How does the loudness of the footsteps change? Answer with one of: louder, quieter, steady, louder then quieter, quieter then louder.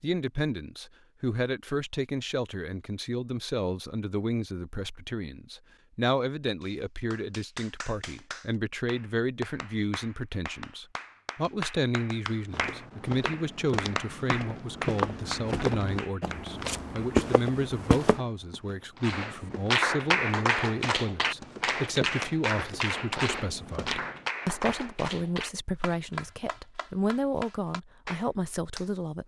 louder then quieter.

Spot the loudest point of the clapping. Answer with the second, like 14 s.
20 s.